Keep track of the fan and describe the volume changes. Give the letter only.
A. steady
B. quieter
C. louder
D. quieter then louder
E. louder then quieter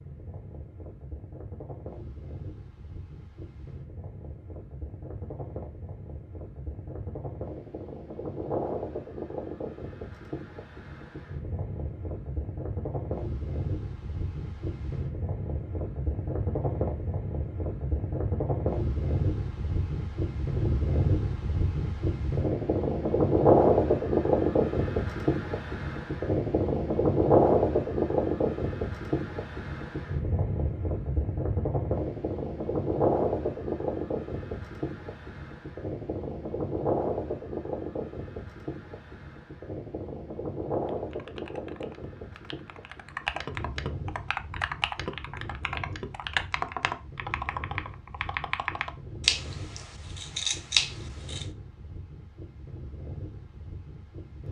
E.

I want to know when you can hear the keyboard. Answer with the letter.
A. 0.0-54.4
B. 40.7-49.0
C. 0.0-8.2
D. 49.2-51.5
B.